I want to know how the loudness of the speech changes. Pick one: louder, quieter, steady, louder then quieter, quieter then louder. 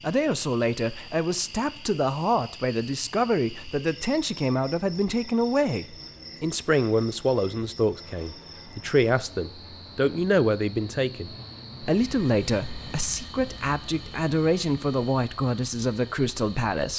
steady.